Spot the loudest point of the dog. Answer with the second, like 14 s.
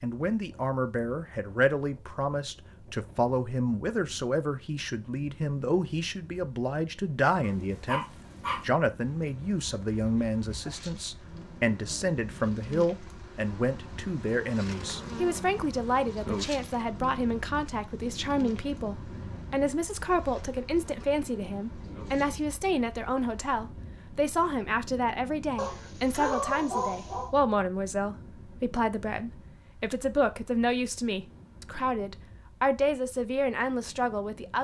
26 s.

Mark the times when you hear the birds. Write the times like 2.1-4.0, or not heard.
not heard.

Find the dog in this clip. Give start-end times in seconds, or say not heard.
7.4-8.7, 25.6-27.3.